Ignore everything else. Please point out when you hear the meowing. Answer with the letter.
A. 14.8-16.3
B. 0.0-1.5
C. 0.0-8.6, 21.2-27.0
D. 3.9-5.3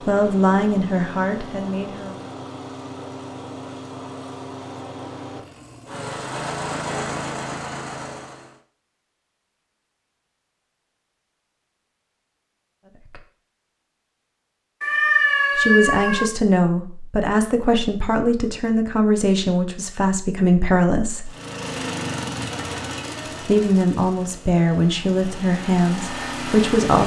A.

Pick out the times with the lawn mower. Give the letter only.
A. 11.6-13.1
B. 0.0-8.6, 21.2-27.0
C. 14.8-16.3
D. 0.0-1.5
B.